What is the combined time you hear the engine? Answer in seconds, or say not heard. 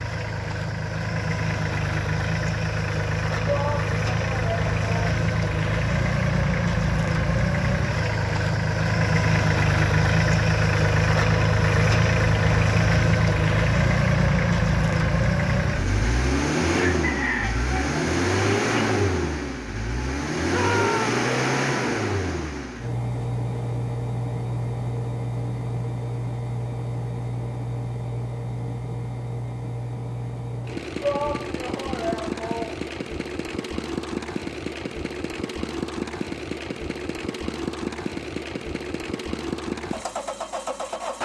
41 s.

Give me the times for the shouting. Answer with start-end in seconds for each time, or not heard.
3.5-5.2, 20.4-21.1, 31.0-32.9.